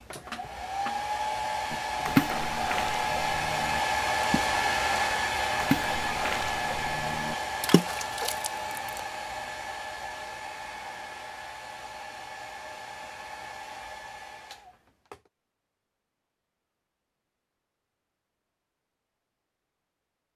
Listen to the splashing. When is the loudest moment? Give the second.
2 s.